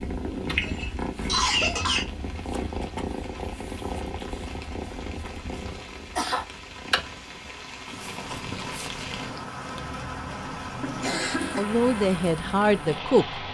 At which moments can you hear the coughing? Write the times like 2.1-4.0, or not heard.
0.5-2.0, 5.7-6.5, 10.8-11.7.